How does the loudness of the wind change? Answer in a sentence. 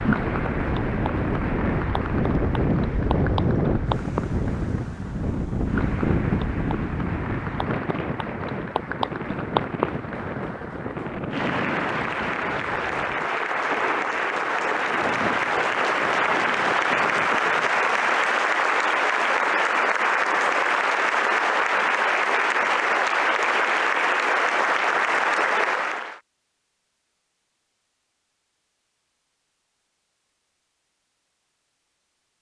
The loudness of the wind goes down.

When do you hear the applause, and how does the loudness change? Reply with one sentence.
The applause can be heard from 0.0 to 26.1 s, getting louder.